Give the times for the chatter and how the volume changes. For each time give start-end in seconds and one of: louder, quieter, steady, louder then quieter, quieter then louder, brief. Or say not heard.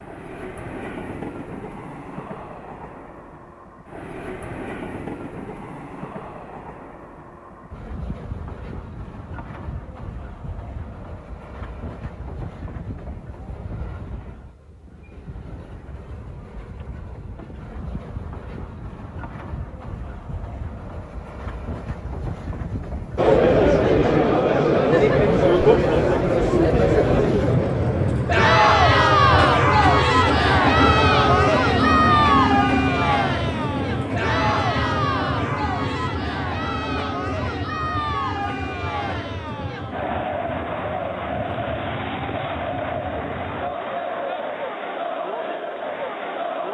23.1-46.6 quieter.